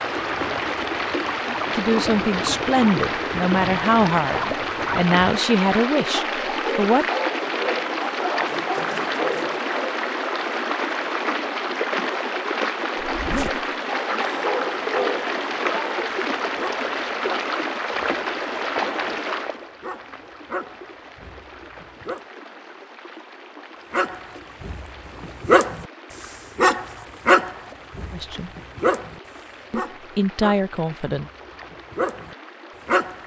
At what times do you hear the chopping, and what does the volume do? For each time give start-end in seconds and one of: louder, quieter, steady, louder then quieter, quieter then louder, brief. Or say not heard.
not heard.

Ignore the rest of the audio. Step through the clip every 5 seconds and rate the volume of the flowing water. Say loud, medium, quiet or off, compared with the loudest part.
loud, loud, loud, loud, quiet, quiet, quiet.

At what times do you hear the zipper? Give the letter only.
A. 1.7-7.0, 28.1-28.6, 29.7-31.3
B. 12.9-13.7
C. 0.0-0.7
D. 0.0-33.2
B.